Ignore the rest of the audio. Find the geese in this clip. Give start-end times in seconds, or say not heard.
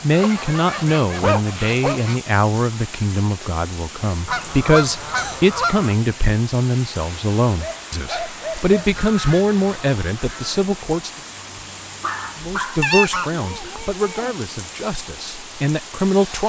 0.1-2.2, 4.2-6.0, 8.9-10.7, 12.8-14.3.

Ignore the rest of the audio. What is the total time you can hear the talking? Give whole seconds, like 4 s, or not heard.
15 s.